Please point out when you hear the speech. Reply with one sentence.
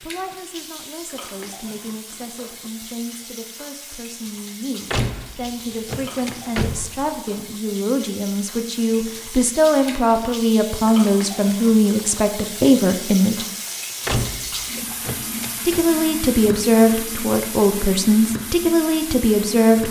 The speech can be heard from 0.0 to 13.4 s and from 15.7 to 19.8 s.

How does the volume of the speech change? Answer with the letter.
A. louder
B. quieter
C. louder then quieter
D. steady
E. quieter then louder
A.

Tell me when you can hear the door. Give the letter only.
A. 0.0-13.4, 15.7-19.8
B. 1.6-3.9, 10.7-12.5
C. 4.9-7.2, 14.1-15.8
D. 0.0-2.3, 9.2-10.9
C.